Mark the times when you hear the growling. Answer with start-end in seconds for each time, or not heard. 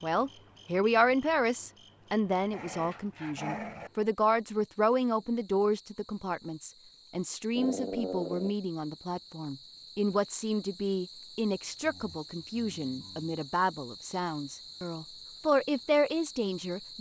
2.3-3.9, 7.5-8.6, 11.8-13.3.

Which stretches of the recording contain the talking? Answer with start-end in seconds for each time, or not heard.
0.0-16.9.